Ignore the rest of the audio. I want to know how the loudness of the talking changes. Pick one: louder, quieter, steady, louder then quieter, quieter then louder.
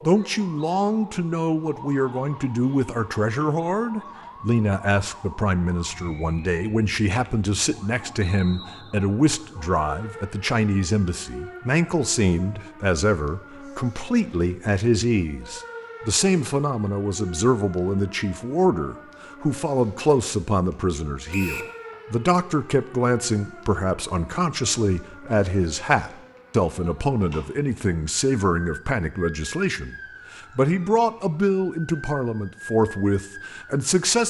steady.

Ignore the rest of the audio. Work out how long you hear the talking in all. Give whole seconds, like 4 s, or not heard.
34 s.